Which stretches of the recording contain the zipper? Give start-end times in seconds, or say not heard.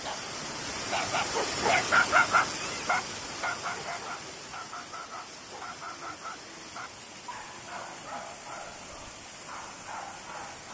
not heard.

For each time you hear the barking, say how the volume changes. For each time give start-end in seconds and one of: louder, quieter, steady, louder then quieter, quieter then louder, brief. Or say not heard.
0.0-10.6 quieter.